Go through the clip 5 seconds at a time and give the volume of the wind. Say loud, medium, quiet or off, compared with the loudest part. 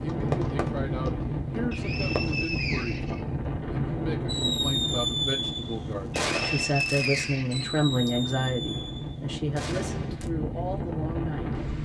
loud, medium, loud.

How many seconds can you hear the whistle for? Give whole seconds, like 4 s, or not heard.
3 s.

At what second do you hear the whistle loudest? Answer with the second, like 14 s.
7 s.